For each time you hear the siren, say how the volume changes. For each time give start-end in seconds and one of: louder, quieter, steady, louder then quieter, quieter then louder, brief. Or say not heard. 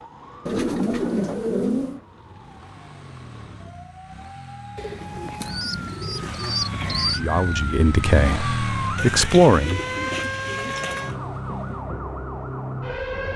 0.0-13.3 louder.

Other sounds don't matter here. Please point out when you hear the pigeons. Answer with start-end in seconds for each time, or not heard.
0.5-2.0, 4.8-7.2, 8.9-11.2.